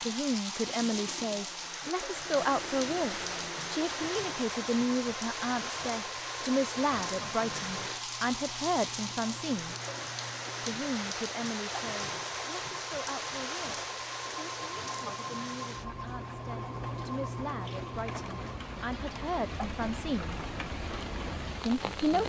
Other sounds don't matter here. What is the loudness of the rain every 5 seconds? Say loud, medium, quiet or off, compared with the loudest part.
loud, loud, loud, medium, loud.